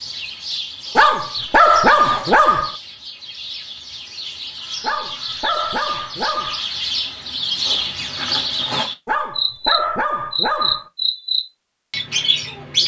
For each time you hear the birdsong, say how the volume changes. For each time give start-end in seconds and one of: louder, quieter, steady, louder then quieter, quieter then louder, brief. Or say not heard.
0.0-12.8 louder.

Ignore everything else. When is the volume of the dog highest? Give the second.
2 s.